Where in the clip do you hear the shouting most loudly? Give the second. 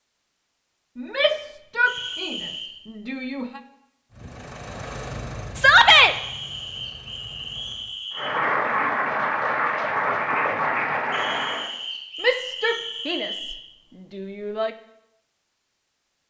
6 s.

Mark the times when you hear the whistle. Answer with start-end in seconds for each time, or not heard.
1.9-2.7, 6.0-8.4, 11.1-13.6.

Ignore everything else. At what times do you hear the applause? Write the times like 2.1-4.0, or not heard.
8.1-11.7.